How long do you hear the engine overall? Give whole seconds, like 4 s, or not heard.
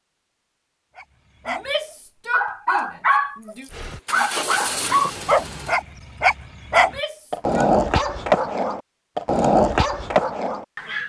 2 s.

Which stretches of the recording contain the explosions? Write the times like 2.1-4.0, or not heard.
not heard.